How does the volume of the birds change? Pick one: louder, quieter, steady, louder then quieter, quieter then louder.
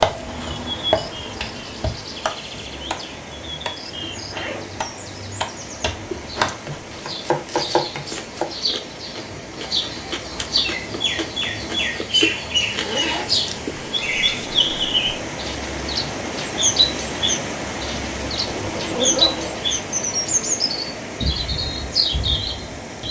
louder.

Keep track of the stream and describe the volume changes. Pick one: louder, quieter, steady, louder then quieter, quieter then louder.
louder.